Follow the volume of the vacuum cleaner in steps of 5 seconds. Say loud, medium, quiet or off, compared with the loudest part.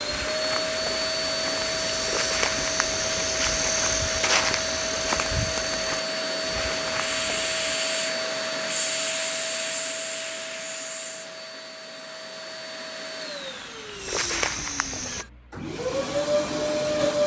loud, loud, medium, loud.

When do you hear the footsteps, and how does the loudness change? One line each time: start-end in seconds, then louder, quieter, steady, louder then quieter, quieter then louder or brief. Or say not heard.
0.0-7.6 louder then quieter
13.3-15.2 brief.